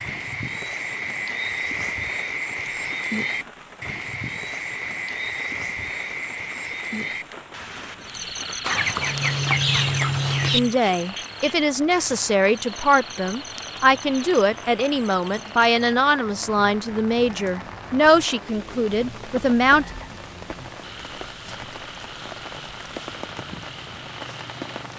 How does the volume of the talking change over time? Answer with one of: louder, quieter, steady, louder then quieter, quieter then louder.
steady.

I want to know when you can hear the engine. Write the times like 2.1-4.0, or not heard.
8.9-10.8.